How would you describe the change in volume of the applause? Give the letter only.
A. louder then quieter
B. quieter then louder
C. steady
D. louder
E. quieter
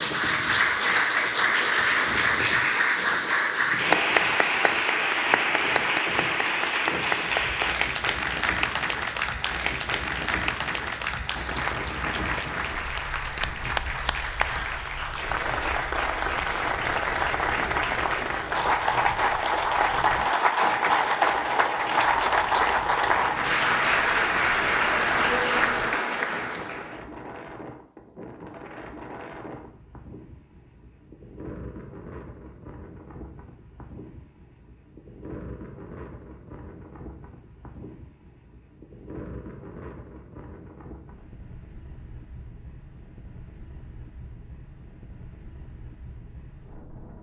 B.